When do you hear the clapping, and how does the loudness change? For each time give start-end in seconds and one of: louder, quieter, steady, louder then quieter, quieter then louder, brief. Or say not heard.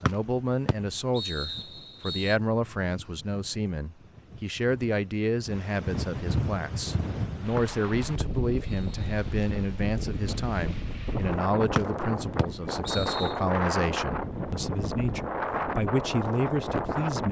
not heard.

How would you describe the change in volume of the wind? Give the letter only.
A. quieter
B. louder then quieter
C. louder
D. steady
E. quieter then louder
C.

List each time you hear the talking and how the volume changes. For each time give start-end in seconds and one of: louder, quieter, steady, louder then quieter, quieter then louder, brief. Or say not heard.
0.0-17.2 steady.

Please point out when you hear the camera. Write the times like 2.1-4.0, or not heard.
not heard.